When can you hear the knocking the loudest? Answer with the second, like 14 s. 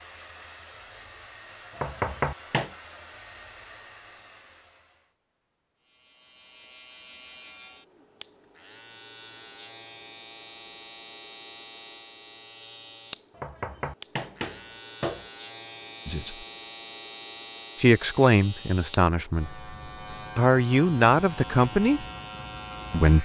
2 s.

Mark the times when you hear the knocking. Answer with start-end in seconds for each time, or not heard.
1.7-2.7, 13.3-15.3.